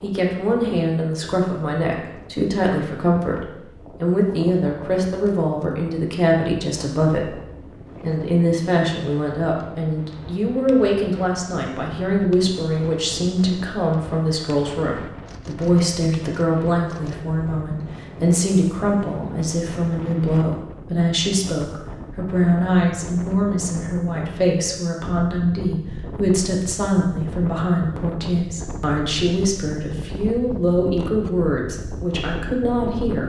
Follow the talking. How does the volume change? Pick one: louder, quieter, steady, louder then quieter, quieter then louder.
steady.